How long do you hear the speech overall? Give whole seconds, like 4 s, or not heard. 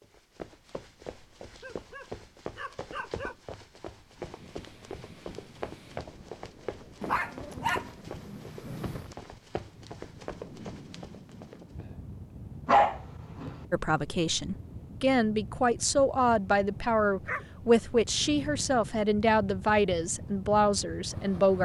8 s.